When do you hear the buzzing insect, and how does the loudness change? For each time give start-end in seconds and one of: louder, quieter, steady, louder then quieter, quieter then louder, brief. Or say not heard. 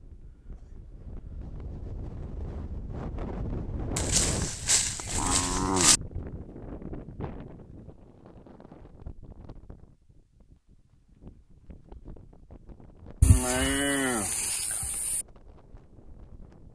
not heard.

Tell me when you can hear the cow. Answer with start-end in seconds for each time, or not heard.
4.0-6.0, 13.2-15.2.